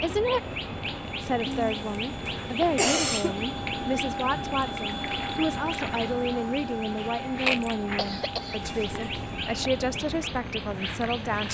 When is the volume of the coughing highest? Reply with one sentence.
The volume of the coughing peaks at 3 seconds.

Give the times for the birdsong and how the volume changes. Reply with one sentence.
You can hear the birdsong from 0.0 to 11.4 s, at a steady volume.